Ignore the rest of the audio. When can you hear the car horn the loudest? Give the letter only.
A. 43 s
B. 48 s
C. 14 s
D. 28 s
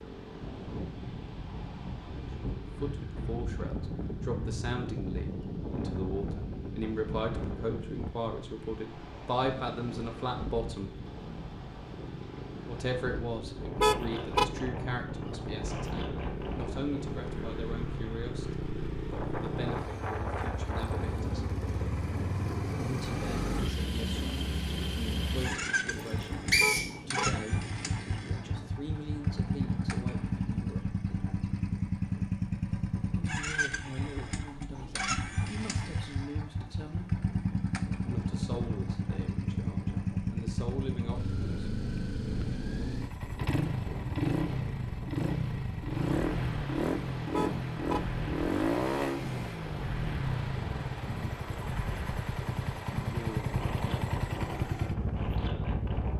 C.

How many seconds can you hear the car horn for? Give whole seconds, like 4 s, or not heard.
2 s.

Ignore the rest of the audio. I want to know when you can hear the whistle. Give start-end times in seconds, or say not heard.
26.1-26.9.